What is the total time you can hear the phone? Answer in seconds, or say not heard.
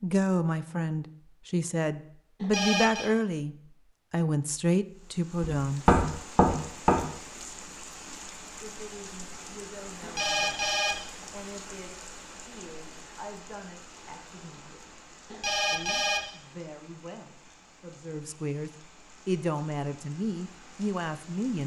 3 s.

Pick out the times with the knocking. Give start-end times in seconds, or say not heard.
5.4-7.0.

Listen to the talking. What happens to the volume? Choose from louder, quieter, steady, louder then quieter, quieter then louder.
quieter then louder.